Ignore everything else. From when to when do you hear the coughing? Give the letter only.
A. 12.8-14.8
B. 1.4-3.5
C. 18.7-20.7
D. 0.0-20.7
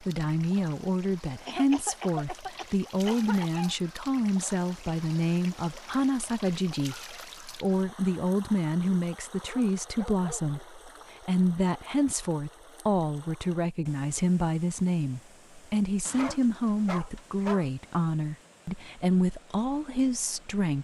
B.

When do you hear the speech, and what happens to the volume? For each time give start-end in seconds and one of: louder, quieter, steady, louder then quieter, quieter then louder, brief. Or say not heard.
0.0-20.7 steady.